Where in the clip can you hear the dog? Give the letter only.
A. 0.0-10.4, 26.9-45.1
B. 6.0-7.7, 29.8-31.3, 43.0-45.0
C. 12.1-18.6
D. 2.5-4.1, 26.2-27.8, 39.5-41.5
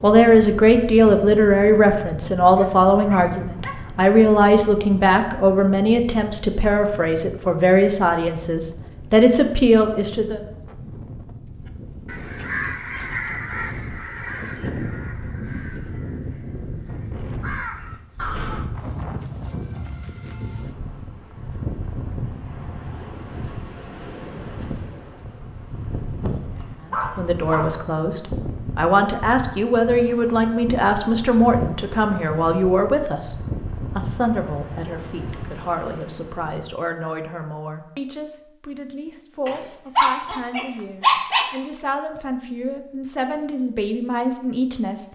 D.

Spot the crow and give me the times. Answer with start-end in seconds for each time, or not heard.
12.1-18.6.